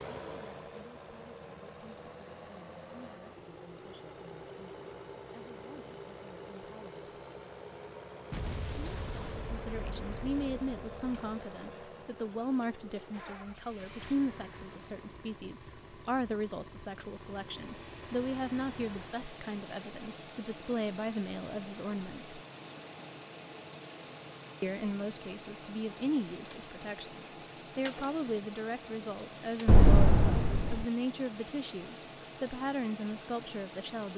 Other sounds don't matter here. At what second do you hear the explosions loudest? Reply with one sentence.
The volume of the explosions peaks at 30 seconds.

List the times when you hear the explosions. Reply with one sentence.
You can hear the explosions from 8.3 to 11.2 s and from 29.6 to 30.9 s.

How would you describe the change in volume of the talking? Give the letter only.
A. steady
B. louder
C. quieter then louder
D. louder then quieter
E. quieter
B.